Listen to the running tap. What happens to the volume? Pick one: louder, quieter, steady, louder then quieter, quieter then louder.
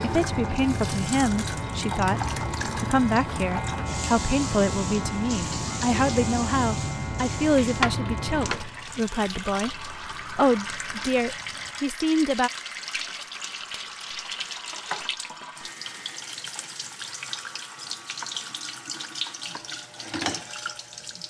steady.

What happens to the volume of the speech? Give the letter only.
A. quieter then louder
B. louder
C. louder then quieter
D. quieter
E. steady
E.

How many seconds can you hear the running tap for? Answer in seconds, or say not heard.
21 s.